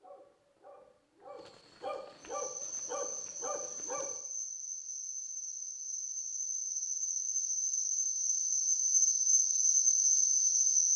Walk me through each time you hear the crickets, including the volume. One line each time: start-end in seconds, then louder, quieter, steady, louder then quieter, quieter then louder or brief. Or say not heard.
2.2-10.9 louder.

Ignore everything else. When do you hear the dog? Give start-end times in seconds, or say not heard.
0.0-4.2.